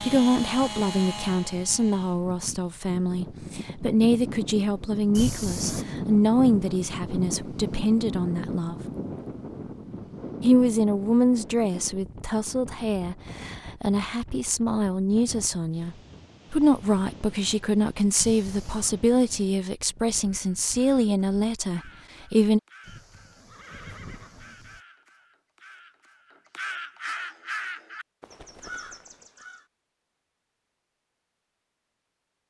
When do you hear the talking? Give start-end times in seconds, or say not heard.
0.0-8.8, 10.4-22.6.